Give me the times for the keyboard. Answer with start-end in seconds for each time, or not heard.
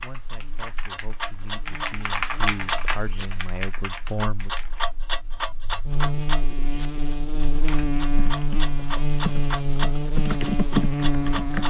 0.0-4.8, 7.5-11.6.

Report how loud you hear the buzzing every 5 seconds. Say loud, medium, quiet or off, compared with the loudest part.
quiet, loud, loud.